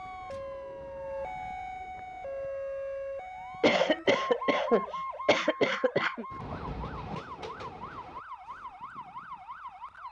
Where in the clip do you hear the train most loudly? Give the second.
7 s.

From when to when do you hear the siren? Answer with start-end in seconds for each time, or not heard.
0.0-10.0.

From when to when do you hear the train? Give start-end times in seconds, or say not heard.
0.0-2.5, 6.3-8.2.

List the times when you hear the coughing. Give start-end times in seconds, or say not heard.
3.6-6.2.